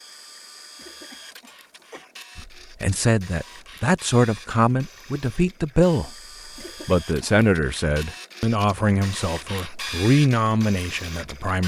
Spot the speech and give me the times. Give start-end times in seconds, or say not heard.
2.4-6.1, 6.8-11.6.